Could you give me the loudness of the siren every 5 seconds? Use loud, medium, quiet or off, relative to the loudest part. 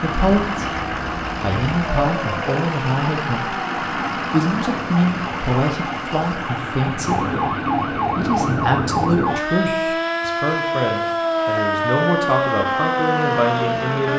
medium, loud, loud.